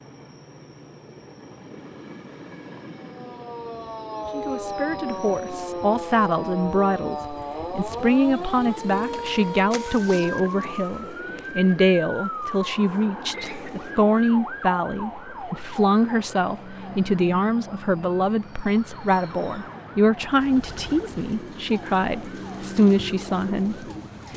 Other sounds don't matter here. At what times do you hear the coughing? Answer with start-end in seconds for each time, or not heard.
13.3-13.9.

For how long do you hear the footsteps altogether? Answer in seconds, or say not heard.
not heard.